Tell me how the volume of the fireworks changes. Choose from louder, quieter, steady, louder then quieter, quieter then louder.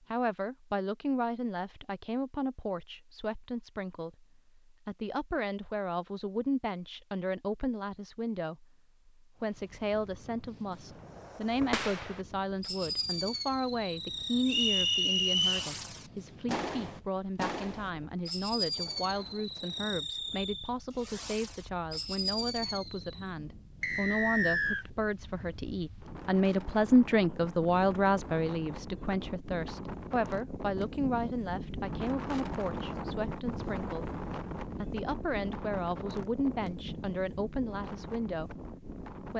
steady.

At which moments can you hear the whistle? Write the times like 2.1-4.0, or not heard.
14.4-15.7, 23.8-24.9.